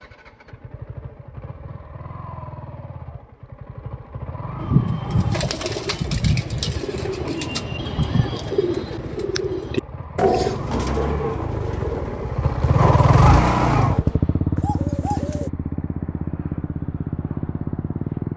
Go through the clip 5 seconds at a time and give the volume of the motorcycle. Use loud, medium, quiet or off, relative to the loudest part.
quiet, quiet, loud, medium.